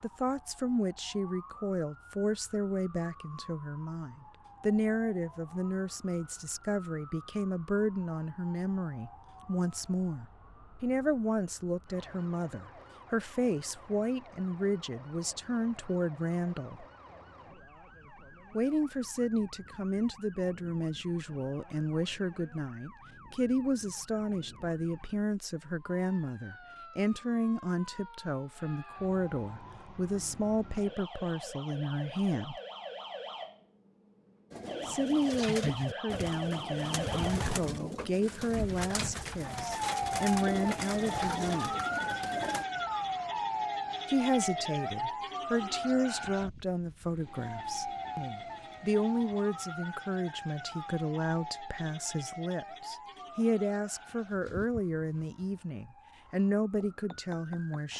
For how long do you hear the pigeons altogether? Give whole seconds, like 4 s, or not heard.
8 s.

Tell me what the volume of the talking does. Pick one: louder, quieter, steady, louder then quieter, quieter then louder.
steady.